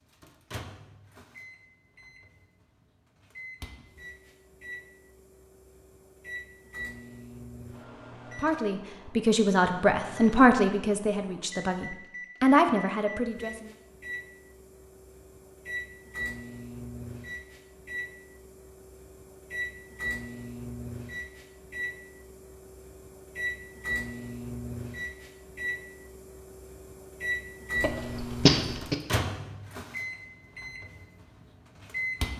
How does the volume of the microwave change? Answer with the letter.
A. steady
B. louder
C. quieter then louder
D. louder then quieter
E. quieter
B.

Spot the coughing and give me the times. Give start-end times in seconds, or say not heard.
27.8-28.9.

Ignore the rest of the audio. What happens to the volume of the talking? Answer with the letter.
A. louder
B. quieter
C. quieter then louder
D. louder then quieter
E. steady
C.